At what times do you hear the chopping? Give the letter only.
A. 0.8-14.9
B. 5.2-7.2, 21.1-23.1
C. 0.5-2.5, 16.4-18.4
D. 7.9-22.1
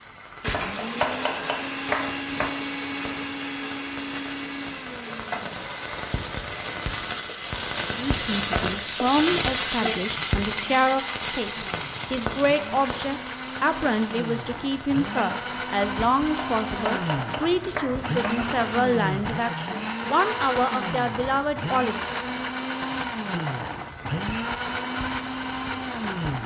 C.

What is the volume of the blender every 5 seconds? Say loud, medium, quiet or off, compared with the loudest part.
loud, medium, medium, loud, loud, loud.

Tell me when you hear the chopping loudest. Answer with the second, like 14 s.
1 s.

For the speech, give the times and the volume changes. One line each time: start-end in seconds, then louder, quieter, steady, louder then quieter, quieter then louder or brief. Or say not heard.
7.9-22.1 steady.